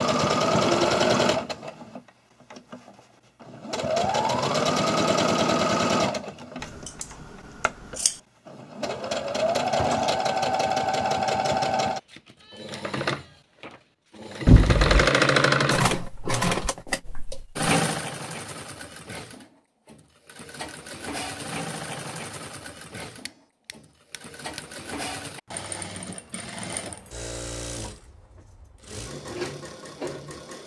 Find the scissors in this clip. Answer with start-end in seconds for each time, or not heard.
6.6-8.2, 14.4-15.1, 23.2-24.6.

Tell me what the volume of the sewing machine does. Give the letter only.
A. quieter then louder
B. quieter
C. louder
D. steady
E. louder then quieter
B.